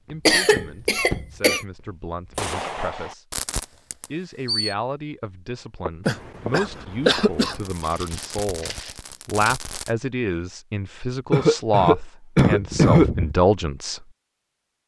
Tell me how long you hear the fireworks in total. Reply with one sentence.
You can hear the fireworks for 5 seconds altogether.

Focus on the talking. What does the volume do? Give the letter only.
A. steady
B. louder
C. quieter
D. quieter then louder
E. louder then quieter
B.